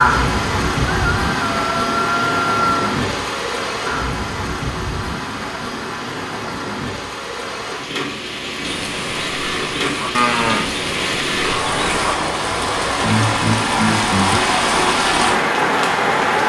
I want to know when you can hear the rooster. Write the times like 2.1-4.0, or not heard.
0.8-2.9.